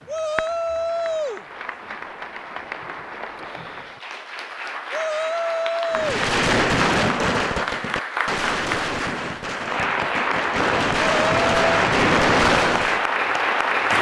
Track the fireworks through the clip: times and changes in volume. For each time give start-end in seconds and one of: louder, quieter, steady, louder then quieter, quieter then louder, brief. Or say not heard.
5.9-13.1 quieter then louder.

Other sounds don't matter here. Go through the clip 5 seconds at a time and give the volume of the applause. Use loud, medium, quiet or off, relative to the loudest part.
quiet, medium, loud.